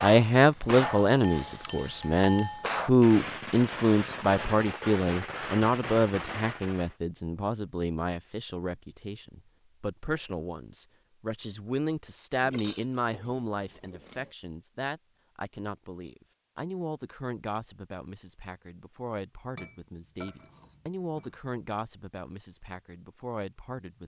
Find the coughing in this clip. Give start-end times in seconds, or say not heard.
not heard.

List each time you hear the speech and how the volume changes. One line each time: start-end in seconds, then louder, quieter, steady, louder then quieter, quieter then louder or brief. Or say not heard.
0.0-24.0 quieter.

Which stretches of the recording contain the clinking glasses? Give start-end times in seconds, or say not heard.
0.8-2.7, 12.4-14.3, 19.6-21.3.